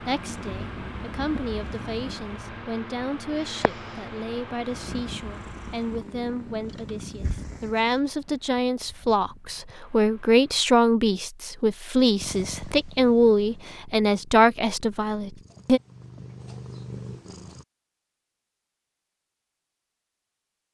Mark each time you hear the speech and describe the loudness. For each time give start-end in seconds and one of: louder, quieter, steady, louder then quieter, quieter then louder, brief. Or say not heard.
0.0-15.8 louder.